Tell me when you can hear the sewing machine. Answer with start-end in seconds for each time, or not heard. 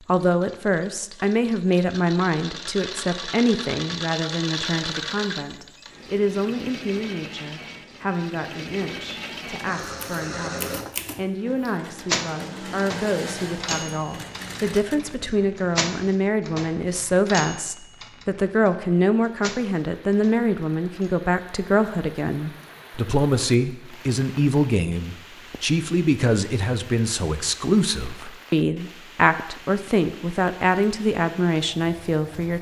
0.0-15.2.